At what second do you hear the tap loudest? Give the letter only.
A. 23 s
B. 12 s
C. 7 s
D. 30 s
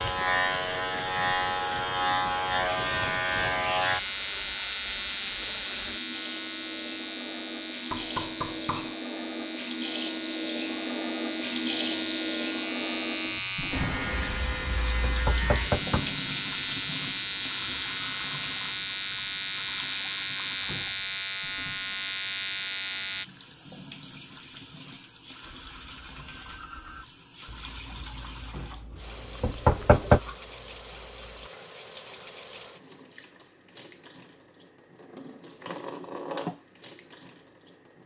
B.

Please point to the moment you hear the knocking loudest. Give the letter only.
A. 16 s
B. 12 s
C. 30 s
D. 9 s
C.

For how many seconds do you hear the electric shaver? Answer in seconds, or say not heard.
23 s.